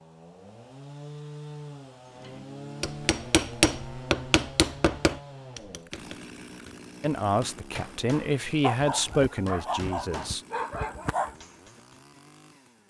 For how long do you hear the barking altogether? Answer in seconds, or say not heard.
3 s.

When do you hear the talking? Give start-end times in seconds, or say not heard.
7.0-10.4.